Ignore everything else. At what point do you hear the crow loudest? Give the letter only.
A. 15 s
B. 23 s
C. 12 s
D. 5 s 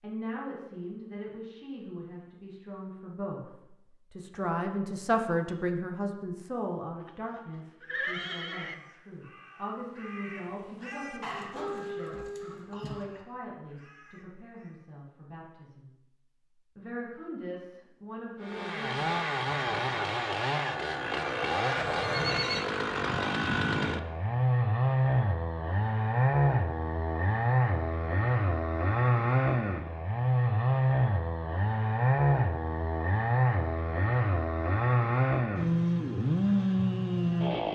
C.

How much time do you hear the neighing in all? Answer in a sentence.
The neighing can be heard for 3 seconds in total.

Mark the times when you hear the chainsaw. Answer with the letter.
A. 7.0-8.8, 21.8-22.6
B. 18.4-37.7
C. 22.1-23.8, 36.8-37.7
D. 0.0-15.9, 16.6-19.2
B.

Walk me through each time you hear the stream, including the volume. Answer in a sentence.
You can't hear the stream here.